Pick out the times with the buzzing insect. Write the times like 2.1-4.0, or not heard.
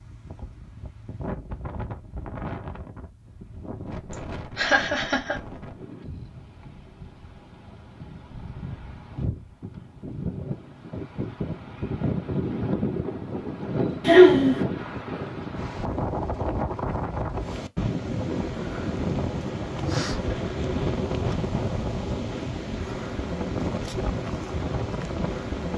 not heard.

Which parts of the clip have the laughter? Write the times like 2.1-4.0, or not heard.
4.5-5.4, 14.1-14.6.